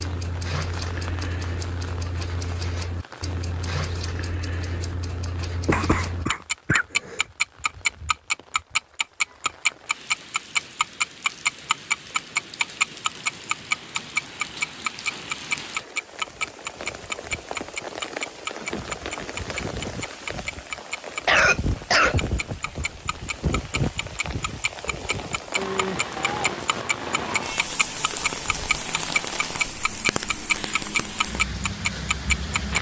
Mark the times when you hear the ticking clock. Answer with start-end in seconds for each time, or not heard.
0.0-32.7.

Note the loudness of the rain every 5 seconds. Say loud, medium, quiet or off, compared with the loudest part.
quiet, quiet, medium, medium, loud, loud, loud.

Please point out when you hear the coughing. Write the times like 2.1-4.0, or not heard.
5.7-7.2, 21.2-23.2.